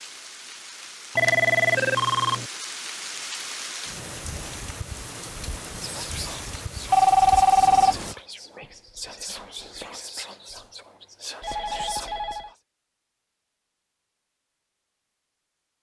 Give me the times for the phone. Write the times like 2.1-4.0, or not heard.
1.1-2.5, 6.9-8.0, 11.4-12.5.